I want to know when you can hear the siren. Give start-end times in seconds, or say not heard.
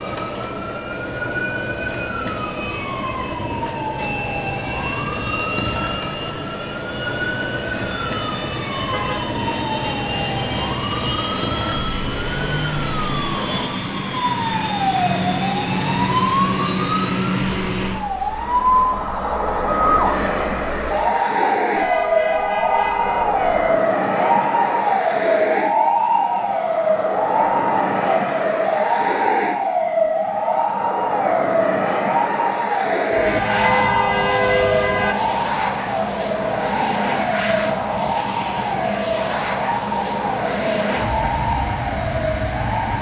0.0-42.9.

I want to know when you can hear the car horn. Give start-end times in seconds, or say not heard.
8.9-9.3, 21.8-23.8, 33.1-35.1.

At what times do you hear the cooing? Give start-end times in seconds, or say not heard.
not heard.